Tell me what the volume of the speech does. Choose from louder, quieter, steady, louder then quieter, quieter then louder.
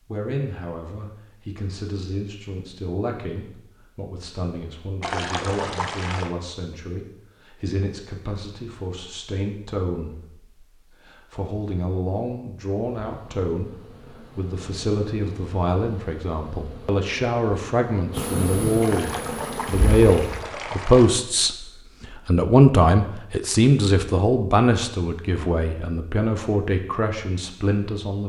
louder.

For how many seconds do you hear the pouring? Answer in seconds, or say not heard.
4 s.